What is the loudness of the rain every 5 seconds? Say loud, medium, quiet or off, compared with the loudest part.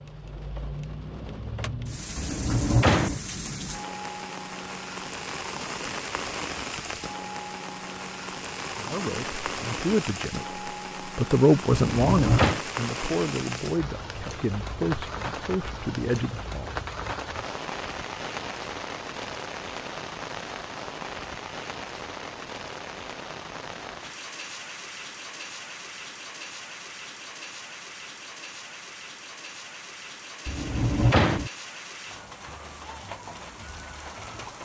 loud, loud, loud, loud, loud, medium, medium.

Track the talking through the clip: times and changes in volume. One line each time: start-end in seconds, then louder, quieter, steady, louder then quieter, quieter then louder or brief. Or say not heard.
8.8-16.8 louder then quieter.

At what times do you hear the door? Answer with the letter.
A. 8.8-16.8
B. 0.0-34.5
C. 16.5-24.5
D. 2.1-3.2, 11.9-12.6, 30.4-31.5
D.